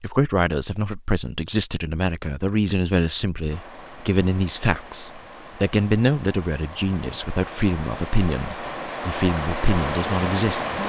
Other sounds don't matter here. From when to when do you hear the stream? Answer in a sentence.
The stream can be heard from 3.5 to 10.8 s.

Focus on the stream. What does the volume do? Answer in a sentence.
The loudness of the stream goes up.